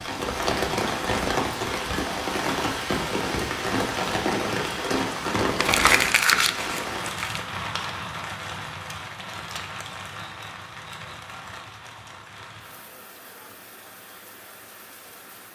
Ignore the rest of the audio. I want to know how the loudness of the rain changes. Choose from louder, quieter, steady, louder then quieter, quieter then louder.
quieter.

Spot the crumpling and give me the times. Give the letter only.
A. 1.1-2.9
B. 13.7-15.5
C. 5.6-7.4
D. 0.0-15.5
C.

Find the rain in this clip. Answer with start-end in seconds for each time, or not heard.
0.0-15.5.